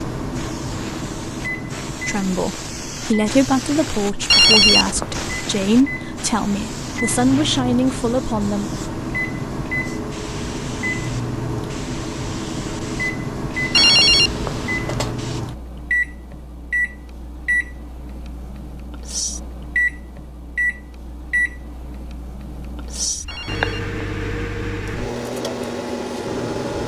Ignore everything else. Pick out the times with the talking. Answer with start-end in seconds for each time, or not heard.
2.0-8.8.